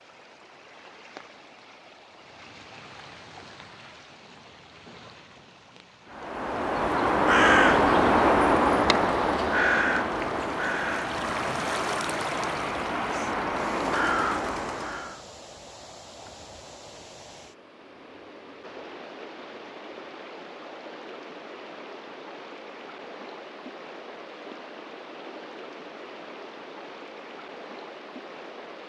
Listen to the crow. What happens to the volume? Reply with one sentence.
The volume of the crow goes down, then up.